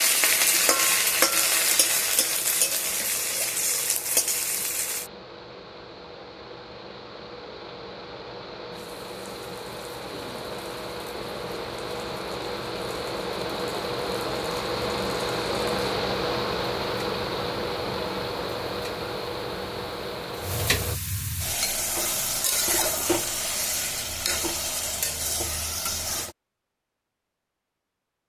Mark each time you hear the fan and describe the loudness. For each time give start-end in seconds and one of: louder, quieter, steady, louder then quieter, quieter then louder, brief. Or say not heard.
0.0-21.0 louder.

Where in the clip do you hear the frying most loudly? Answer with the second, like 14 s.
1 s.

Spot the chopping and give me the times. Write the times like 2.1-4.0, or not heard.
not heard.